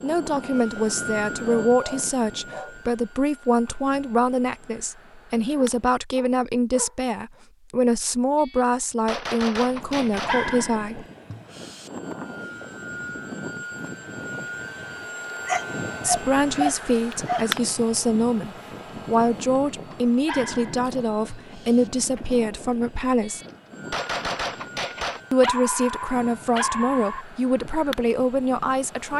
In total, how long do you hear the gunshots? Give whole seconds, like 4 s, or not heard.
4 s.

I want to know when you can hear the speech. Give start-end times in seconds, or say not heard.
0.0-11.1, 16.0-23.4, 25.3-29.1.